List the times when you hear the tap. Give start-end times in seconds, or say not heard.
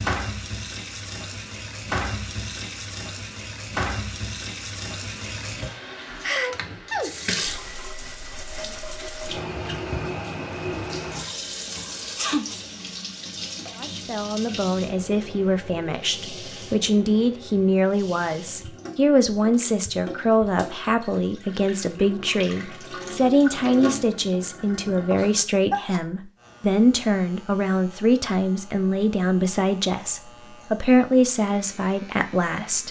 0.0-25.4.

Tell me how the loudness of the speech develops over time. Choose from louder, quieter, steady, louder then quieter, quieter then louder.
steady.